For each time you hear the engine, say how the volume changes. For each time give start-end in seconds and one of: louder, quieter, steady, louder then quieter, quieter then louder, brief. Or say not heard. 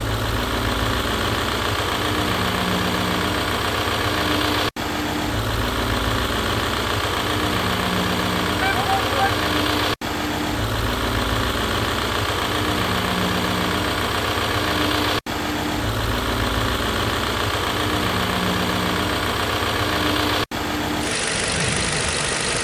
0.0-22.5 steady.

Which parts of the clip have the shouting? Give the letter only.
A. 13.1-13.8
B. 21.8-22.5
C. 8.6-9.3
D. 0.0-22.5
C.